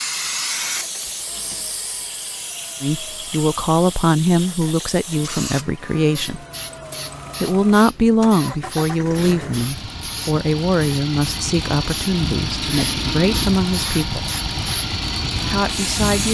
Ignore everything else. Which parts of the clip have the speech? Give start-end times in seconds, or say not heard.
2.8-6.4, 7.4-14.2, 15.4-16.3.